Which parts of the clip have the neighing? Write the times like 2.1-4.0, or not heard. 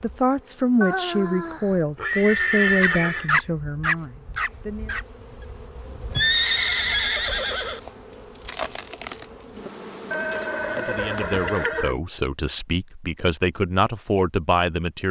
0.8-3.3, 6.2-7.8, 10.1-11.9.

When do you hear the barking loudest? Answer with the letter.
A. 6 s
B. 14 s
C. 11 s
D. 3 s
D.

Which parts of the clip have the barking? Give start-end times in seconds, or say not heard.
2.8-6.2.